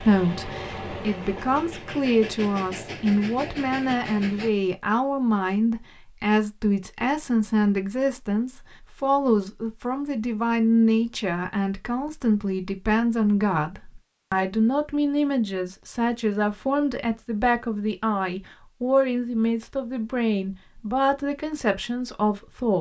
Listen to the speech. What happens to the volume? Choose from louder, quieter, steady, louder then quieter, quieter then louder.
steady.